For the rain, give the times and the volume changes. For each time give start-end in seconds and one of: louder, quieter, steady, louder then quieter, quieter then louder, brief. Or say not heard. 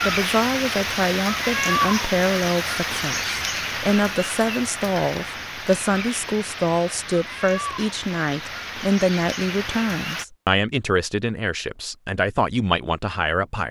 0.0-10.2 quieter.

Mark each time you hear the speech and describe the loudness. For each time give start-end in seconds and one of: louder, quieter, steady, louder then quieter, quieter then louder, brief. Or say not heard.
0.0-13.6 steady.